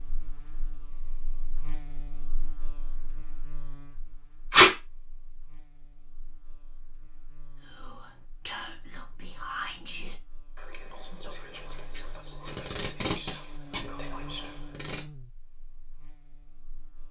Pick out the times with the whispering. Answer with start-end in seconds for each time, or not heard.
7.6-14.8.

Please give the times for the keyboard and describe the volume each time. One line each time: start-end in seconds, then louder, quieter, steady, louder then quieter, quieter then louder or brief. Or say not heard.
not heard.